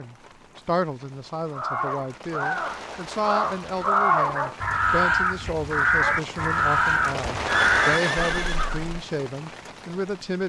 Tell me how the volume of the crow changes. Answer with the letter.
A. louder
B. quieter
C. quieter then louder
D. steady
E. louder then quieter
A.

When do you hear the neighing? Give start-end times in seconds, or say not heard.
7.5-8.7.